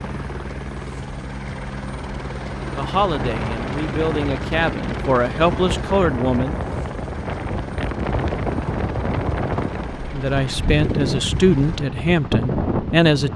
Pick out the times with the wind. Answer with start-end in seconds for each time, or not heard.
3.0-13.3.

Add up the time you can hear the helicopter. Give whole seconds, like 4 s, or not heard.
13 s.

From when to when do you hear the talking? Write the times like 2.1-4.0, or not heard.
2.6-6.6, 10.1-13.3.